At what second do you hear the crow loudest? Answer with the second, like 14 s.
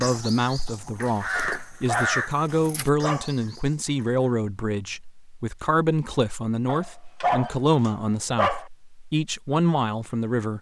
2 s.